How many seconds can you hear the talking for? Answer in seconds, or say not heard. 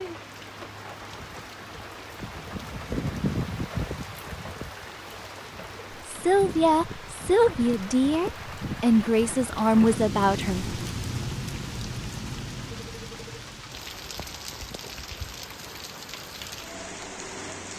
5 s.